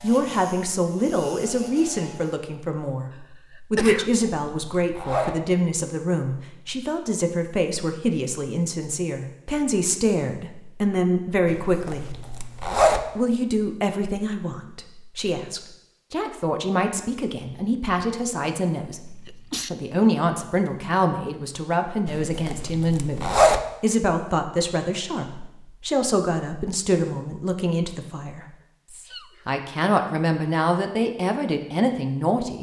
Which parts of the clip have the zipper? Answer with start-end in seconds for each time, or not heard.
4.0-5.3, 11.4-13.0, 22.1-23.6.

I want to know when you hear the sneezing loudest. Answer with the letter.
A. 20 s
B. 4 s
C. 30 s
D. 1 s
B.